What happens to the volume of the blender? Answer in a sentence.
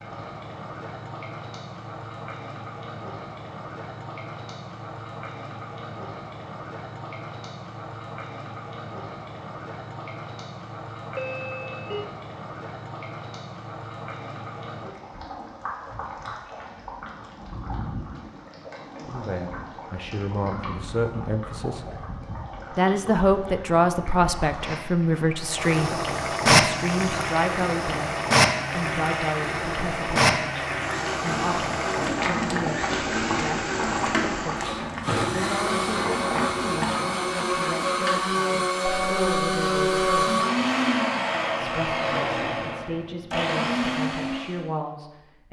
The volume of the blender goes up.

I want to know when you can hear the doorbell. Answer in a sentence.
The doorbell can be heard from 11.2 to 12.1 s and from 38.9 to 40.2 s.